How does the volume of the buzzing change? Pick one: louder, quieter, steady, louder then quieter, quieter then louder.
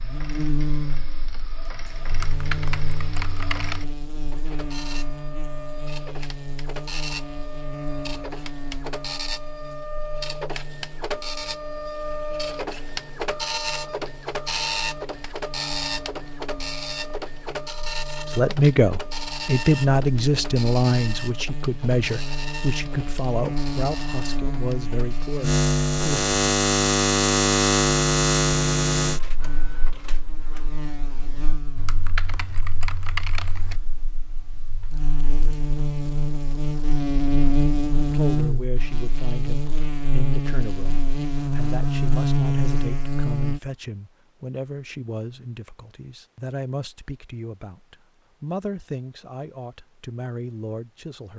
quieter then louder.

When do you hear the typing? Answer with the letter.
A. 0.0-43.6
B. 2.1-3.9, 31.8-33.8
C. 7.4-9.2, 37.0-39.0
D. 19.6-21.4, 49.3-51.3
B.